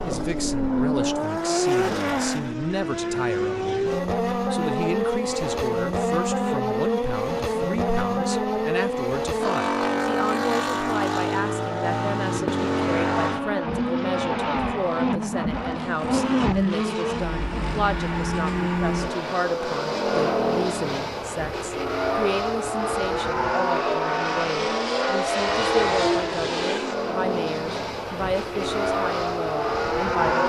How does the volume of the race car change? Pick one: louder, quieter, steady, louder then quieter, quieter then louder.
steady.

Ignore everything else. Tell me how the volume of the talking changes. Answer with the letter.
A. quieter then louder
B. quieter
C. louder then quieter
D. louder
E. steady
E.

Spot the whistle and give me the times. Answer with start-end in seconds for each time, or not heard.
not heard.